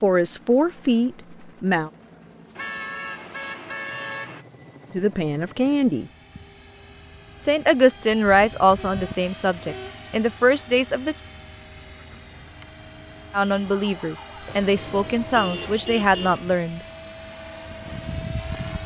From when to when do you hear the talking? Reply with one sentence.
You can hear the talking from 0.0 to 1.9 s, from 4.9 to 6.1 s, from 7.4 to 11.2 s and from 13.3 to 16.8 s.